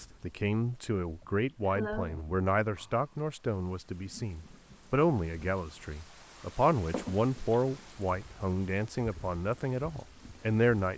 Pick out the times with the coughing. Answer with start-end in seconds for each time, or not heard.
1.2-2.2, 6.9-7.6.